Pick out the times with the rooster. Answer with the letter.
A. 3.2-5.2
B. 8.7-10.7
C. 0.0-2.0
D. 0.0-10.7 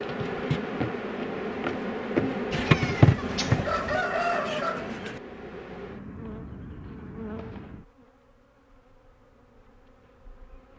A.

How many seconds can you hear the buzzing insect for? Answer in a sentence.
You can hear the buzzing insect for 11 seconds altogether.